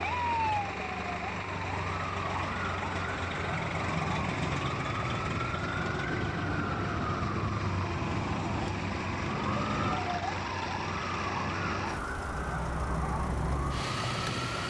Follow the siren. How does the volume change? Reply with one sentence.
The loudness of the siren stays about the same.